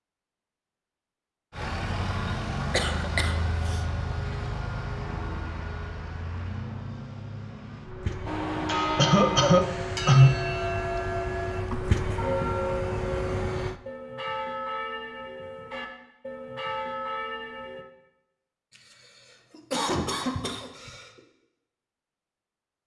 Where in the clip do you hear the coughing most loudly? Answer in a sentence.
The loudest moment of the coughing is at 10 seconds.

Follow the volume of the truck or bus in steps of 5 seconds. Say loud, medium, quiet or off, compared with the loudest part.
loud, medium, loud, off, off.